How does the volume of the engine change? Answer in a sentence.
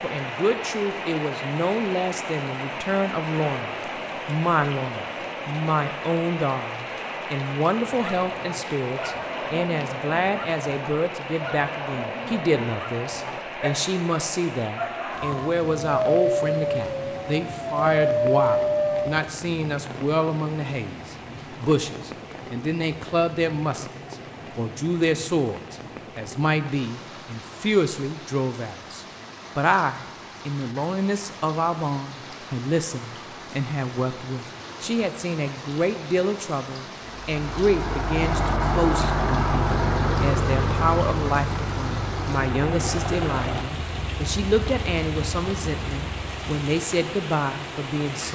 The loudness of the engine goes down.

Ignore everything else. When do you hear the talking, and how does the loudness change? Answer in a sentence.
The talking can be heard from 0.0 to 48.3 s, at a steady volume.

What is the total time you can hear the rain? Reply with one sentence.
You can hear the rain for 48 seconds altogether.